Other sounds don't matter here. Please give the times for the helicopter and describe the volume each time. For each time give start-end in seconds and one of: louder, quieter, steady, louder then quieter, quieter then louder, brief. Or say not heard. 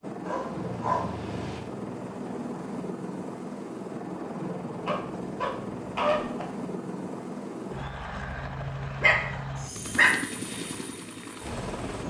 0.0-12.0 steady.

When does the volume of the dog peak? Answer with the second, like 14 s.
10 s.